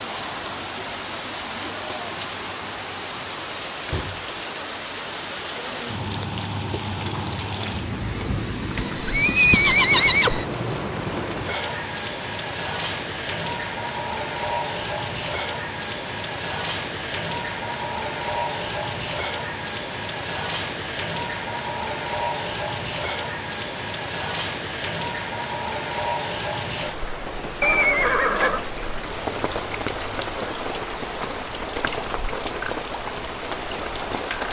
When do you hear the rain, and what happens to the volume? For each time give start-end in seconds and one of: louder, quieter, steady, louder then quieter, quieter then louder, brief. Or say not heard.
0.0-34.4 steady.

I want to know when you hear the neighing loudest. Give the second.
9 s.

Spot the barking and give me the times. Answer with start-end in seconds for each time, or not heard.
not heard.